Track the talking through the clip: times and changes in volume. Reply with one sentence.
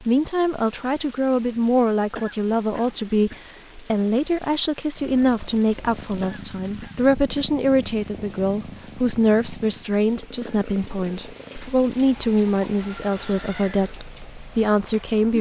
The talking can be heard from 0.0 to 15.3 s, at a steady volume.